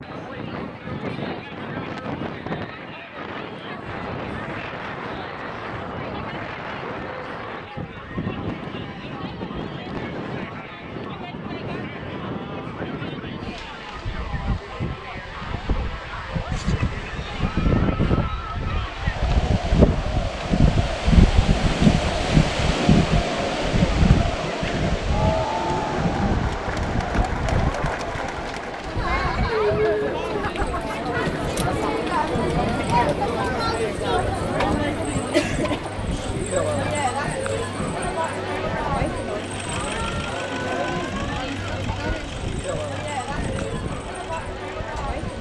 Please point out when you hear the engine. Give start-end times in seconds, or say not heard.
39.2-45.1.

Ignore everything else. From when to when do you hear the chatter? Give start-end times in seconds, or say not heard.
0.0-45.3.